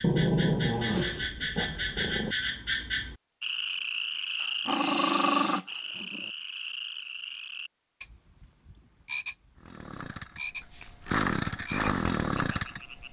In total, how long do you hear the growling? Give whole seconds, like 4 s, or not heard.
5 s.